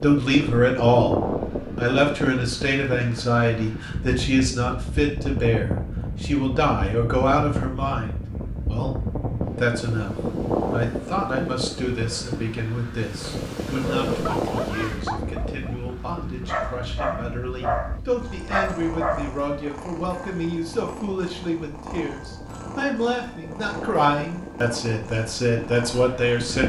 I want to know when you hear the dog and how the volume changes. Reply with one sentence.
The dog can be heard from 14.1 to 19.4 s, getting quieter then louder.